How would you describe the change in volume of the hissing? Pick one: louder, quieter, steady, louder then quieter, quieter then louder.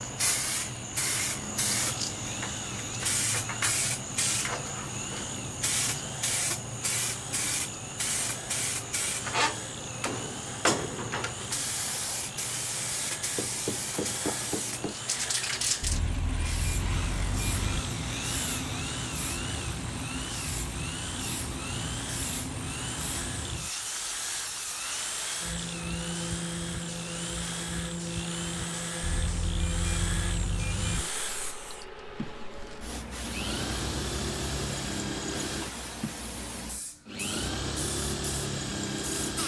quieter.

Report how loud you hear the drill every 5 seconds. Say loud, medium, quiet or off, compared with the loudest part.
medium, medium, medium, medium, medium, medium, loud, loud.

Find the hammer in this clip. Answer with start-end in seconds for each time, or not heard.
13.3-14.9.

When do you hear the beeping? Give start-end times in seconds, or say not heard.
15.8-17.9, 29.0-31.1.